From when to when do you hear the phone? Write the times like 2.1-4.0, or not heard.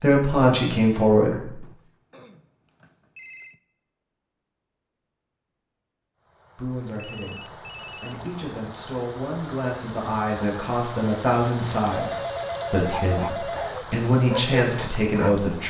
1.6-3.6, 6.7-8.2, 11.9-13.8.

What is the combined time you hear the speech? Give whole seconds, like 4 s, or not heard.
11 s.